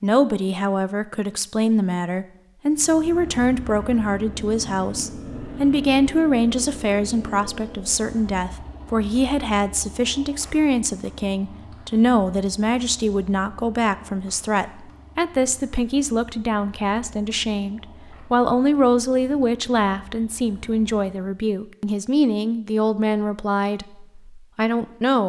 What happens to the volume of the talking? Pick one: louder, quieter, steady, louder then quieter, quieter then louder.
steady.